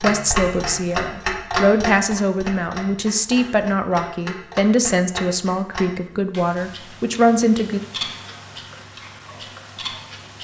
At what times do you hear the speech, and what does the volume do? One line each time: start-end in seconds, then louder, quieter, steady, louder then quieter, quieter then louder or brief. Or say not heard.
0.0-7.8 steady.